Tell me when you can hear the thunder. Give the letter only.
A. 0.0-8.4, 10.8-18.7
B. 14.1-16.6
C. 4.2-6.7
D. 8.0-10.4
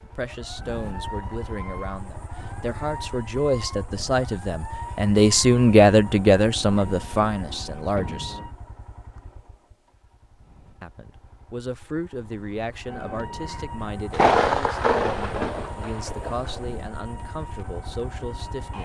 B.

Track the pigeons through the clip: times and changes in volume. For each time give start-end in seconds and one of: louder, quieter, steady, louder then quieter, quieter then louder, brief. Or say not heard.
not heard.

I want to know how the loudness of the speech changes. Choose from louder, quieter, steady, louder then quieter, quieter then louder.
louder then quieter.